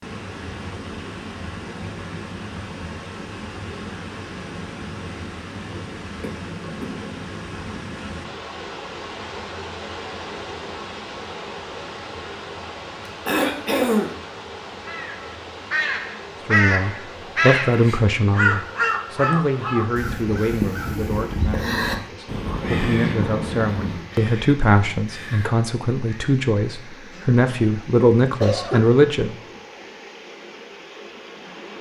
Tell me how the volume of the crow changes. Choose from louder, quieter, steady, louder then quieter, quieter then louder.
quieter.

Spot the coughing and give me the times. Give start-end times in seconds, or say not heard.
6.2-7.2, 13.2-14.1, 27.1-27.7, 28.4-28.9.